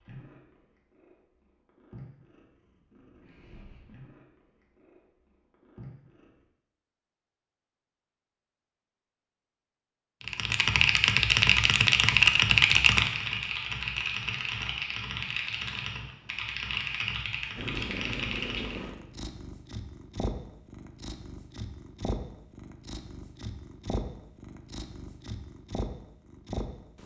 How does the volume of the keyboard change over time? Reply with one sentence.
The volume of the keyboard goes down.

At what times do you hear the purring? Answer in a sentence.
The purring can be heard from 0.0 to 6.5 s and from 17.6 to 27.0 s.